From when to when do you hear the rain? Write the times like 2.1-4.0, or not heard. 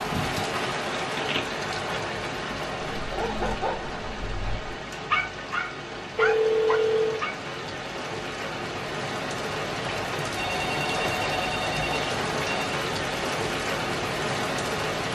0.0-15.0.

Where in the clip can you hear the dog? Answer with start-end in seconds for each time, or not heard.
2.9-7.3.